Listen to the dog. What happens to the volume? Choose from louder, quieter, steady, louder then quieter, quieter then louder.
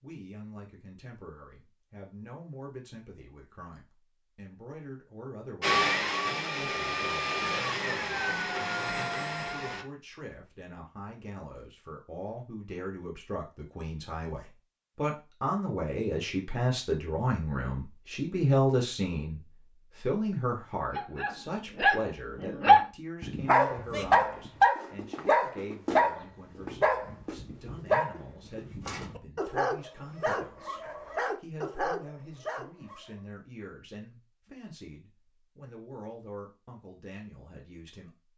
quieter.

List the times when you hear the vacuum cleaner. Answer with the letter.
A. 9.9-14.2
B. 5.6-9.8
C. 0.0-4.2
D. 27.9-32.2
B.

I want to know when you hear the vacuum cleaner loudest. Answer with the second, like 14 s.
6 s.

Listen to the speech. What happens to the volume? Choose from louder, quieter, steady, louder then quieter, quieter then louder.
louder then quieter.